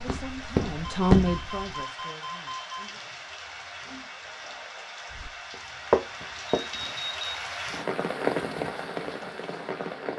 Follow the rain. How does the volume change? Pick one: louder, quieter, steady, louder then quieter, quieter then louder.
louder.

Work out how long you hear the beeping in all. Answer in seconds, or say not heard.
3 s.